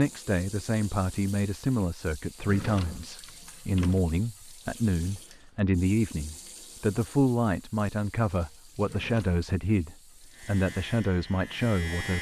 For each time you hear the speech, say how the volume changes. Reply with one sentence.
You can hear the speech from 0.0 to 12.1 s, at a steady volume.